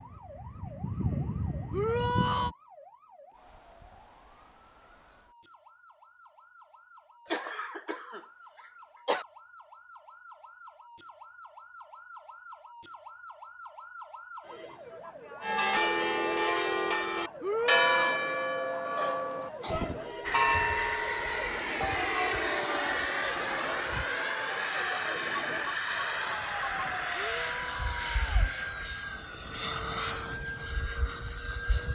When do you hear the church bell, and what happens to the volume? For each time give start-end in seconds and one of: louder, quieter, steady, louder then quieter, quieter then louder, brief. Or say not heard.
15.4-25.8 quieter.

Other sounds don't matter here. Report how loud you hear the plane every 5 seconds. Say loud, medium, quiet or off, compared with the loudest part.
medium, off, off, off, loud, loud, medium.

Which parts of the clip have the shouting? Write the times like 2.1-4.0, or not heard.
1.7-2.5, 17.4-18.2, 27.1-28.5.